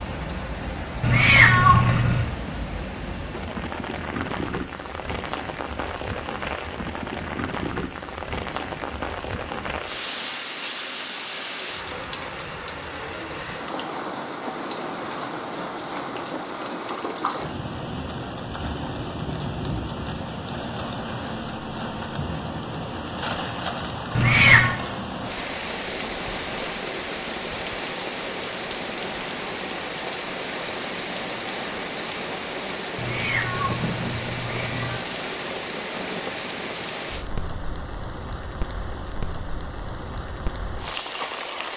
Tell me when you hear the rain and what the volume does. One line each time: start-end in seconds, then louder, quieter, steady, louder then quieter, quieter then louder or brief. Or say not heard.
0.0-41.7 steady.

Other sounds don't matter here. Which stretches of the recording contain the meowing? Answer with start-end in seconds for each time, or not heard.
1.0-2.3, 24.1-24.8, 33.0-35.0.